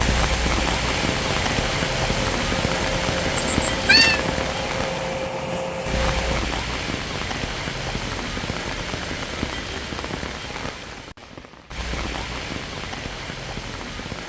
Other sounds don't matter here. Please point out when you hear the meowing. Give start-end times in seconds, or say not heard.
3.4-4.2.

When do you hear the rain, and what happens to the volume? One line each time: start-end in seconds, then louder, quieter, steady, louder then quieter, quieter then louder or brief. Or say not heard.
0.0-14.2 quieter.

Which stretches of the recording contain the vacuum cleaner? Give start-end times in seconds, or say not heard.
0.0-6.4.